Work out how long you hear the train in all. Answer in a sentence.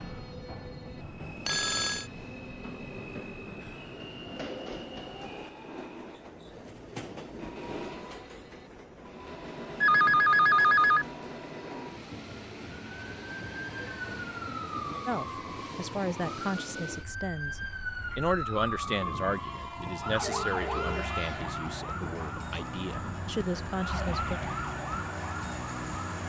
The train can be heard for 26 seconds in total.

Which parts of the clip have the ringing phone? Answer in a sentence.
You can hear the ringing phone from 1.4 to 2.0 s, from 9.8 to 11.1 s and from 20.2 to 20.9 s.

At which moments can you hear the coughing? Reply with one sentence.
The coughing can't be heard in this clip.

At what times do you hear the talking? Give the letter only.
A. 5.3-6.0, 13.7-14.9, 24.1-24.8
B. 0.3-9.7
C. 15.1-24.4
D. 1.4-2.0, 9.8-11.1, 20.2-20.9
C.